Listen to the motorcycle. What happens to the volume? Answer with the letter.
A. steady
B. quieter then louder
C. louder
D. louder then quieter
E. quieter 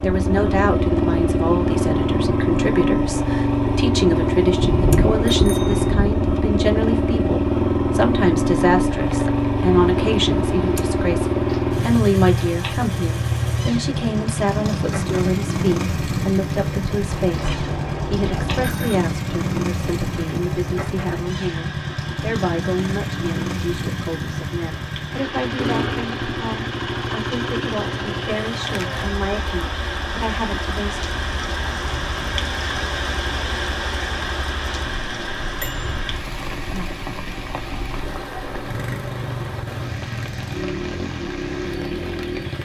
E.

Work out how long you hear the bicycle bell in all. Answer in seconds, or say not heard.
4 s.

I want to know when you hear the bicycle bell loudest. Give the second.
5 s.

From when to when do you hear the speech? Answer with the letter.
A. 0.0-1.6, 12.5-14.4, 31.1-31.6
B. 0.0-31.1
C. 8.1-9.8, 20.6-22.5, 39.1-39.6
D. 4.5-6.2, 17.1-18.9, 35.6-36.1
B.